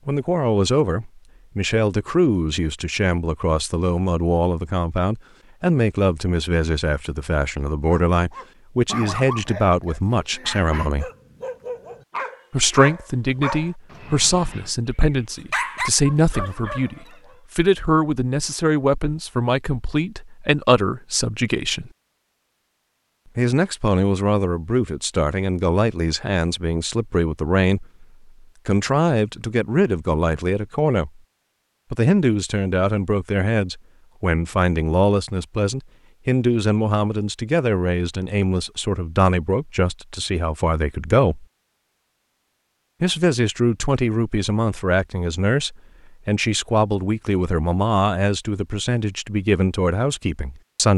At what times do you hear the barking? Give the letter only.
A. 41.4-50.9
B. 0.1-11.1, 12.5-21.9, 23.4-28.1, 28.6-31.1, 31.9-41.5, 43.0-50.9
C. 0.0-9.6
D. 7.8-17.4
D.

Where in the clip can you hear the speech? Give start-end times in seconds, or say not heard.
0.1-11.1, 12.5-21.9, 23.4-28.1, 28.6-31.1, 31.9-41.5, 43.0-50.9.